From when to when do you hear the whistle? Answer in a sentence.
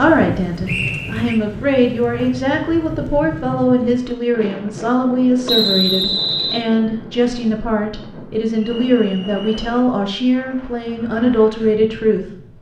You can hear the whistle from 0.7 to 1.4 s, from 5.5 to 6.7 s and from 8.6 to 9.7 s.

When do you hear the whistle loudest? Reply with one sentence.
The volume of the whistle peaks at 6 seconds.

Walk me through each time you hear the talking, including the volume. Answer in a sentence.
The talking can be heard from 0.0 to 12.2 s, at a steady volume.